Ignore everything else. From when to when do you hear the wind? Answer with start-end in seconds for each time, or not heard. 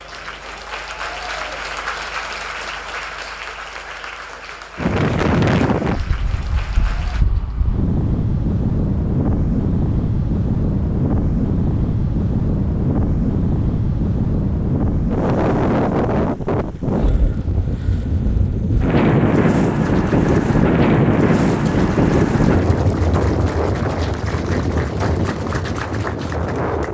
4.8-26.8.